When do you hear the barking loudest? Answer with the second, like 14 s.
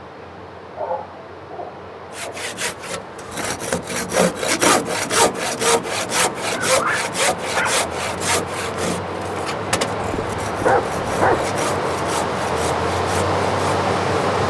11 s.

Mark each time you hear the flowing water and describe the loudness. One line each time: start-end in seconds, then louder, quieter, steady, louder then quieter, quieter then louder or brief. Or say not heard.
0.0-14.4 louder.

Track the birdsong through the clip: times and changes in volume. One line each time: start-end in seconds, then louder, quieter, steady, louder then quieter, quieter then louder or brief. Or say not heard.
not heard.